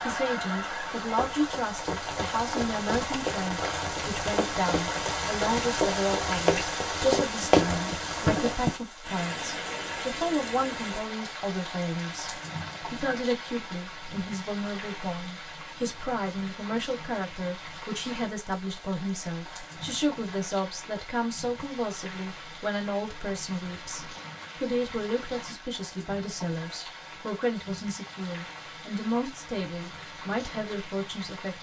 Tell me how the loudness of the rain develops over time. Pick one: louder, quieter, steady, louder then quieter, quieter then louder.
quieter.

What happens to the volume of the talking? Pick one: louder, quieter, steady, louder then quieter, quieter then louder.
steady.